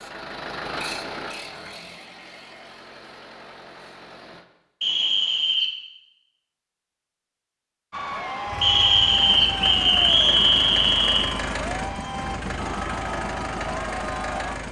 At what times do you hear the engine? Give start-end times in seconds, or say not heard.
0.0-4.5, 8.4-14.6.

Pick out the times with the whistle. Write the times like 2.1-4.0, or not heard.
4.8-5.8, 8.6-11.3.